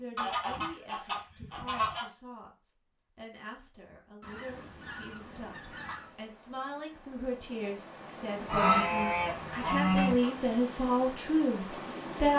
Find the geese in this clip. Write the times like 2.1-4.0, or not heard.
0.1-2.0, 4.2-6.2, 8.4-10.3.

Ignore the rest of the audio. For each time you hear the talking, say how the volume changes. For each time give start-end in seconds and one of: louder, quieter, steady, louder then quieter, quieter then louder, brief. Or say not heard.
0.0-12.3 louder.